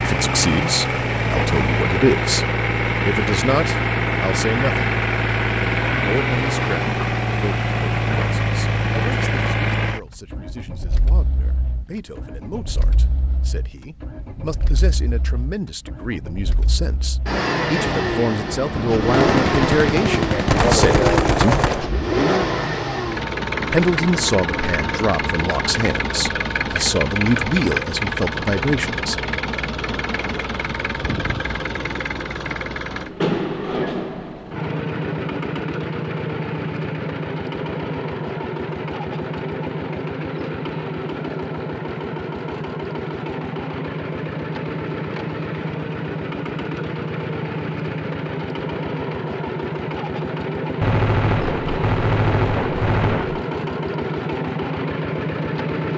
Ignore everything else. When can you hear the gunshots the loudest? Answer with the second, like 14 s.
21 s.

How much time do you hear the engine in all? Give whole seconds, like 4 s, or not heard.
56 s.